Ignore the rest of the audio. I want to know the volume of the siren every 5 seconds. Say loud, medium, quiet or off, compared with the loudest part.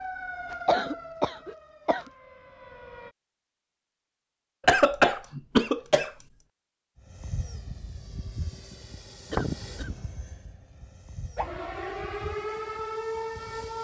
medium, off, loud.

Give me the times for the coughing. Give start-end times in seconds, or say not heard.
0.7-2.0, 4.7-6.1, 9.3-9.9.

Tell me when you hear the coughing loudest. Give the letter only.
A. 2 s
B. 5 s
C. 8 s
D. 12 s
B.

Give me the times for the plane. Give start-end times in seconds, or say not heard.
7.0-13.7.